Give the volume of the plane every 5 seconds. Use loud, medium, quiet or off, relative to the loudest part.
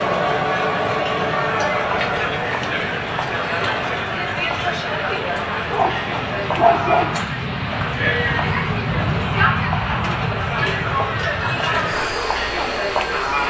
medium, loud, loud.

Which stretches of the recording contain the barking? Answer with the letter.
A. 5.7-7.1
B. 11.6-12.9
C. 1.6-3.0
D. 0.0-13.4
A.